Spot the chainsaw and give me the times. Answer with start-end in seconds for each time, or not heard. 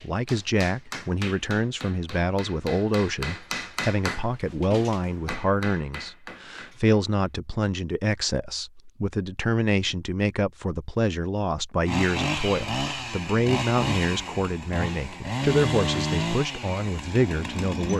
11.8-17.9.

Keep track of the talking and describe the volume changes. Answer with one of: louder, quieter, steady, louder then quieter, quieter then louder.
steady.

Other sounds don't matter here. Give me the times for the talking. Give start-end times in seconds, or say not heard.
0.0-17.9.